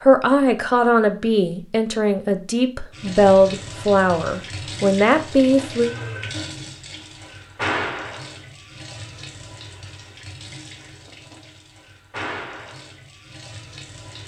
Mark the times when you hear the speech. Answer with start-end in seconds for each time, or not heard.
0.0-5.9.